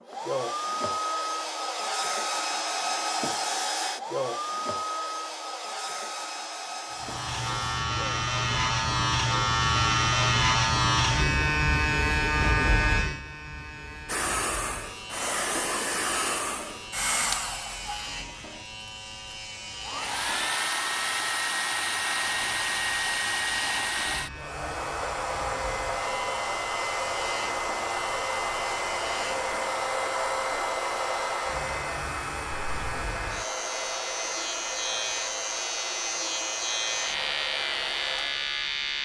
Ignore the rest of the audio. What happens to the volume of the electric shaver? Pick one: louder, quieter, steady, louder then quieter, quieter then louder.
quieter then louder.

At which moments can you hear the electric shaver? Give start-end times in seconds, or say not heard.
6.9-39.0.